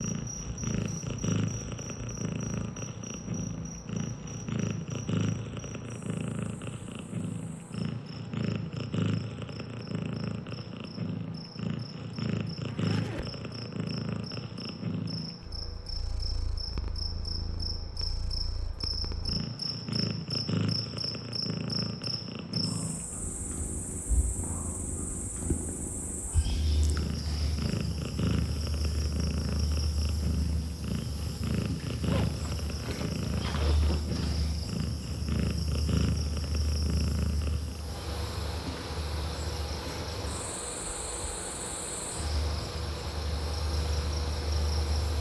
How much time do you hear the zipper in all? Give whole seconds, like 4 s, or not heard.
3 s.